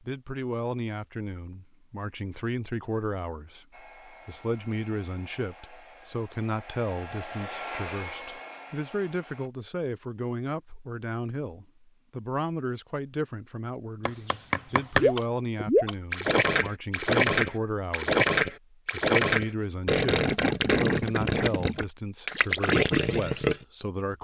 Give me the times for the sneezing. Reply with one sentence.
The sneezing can't be heard in this clip.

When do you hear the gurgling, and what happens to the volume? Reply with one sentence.
The gurgling can be heard from 14.9 to 23.6 s, at a steady volume.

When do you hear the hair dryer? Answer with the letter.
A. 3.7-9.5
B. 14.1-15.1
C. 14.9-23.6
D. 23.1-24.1
A.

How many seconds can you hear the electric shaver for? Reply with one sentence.
The electric shaver can't be heard in this clip.